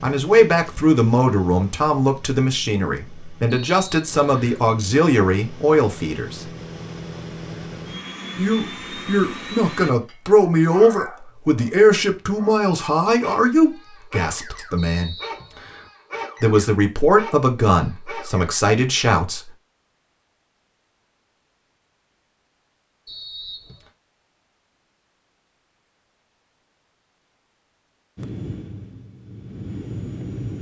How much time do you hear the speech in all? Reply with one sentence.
The speech can be heard for 16 seconds in total.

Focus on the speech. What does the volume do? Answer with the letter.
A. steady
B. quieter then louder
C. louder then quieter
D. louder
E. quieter
A.